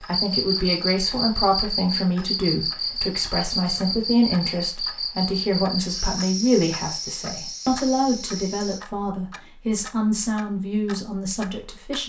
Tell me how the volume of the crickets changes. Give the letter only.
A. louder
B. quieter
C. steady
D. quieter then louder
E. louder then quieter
B.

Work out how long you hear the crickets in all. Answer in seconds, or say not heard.
9 s.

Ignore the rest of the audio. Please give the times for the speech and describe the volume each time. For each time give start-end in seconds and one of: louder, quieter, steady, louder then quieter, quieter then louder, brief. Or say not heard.
0.0-12.0 steady.